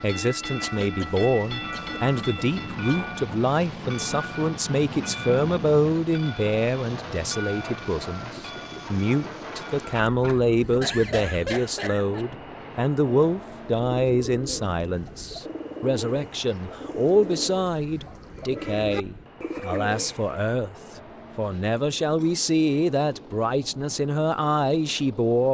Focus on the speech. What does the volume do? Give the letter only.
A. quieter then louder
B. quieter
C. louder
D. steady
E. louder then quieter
D.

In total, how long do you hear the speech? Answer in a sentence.
You can hear the speech for 25 seconds altogether.